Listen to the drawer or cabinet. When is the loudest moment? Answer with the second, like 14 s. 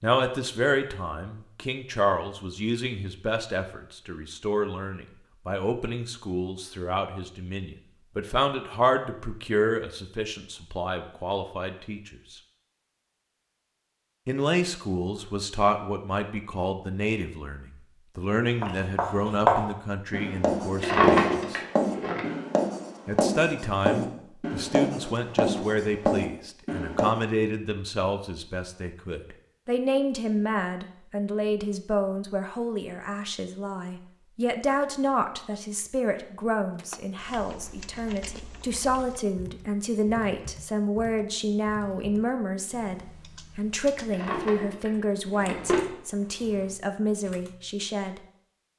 21 s.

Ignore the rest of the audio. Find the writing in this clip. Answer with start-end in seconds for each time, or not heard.
18.6-27.2.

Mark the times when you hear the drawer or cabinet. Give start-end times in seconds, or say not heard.
20.8-22.2, 44.1-46.7.